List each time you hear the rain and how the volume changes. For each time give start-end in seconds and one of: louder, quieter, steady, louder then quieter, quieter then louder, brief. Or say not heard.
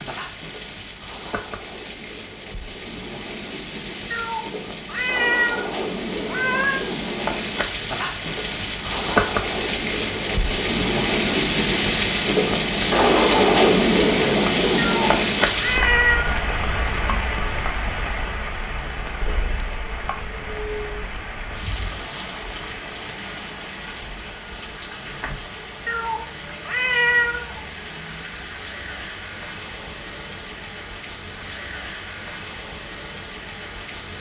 0.0-34.1 louder then quieter.